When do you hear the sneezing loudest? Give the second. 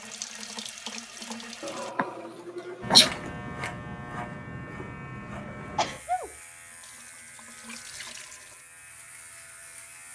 3 s.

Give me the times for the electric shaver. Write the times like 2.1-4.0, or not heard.
2.8-10.1.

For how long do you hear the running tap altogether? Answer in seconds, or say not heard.
4 s.